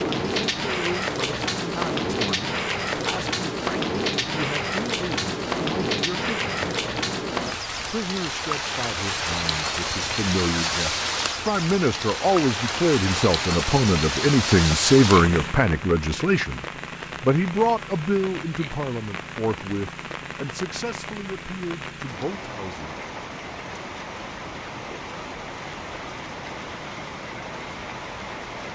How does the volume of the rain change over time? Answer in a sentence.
The loudness of the rain goes down.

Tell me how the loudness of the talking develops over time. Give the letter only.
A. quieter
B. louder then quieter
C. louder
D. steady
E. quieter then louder
B.